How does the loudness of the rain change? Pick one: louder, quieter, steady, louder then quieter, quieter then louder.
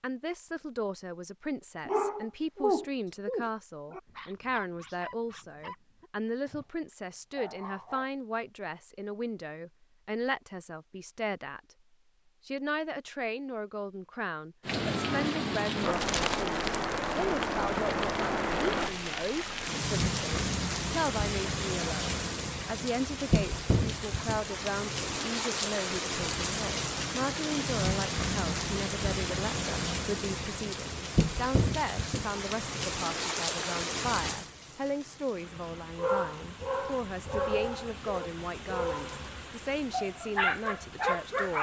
quieter.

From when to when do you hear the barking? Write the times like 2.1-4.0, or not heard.
1.9-8.1, 35.5-39.2, 39.9-41.5.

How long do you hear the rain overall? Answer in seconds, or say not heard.
27 s.